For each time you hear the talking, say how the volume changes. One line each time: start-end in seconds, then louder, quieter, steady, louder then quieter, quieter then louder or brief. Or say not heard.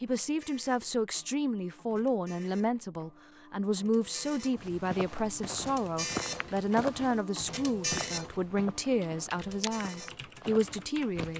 0.0-11.3 steady.